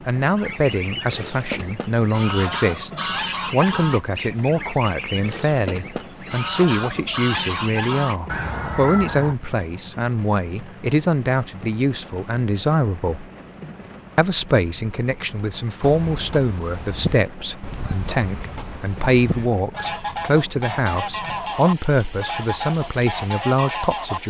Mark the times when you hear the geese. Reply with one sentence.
You can hear the geese from 0.3 to 9.3 s and from 15.8 to 24.2 s.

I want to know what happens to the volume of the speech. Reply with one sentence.
The loudness of the speech stays about the same.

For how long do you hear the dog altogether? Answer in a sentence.
The dog can't be heard in this clip.